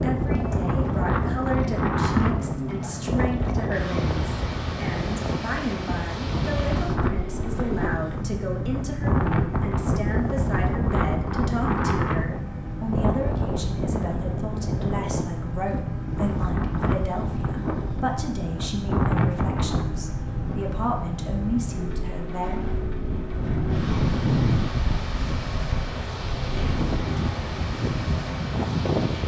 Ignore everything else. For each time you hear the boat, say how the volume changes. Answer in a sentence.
The boat can be heard from 0.0 to 29.2 s, at a steady volume.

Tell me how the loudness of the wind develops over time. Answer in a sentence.
The loudness of the wind stays about the same.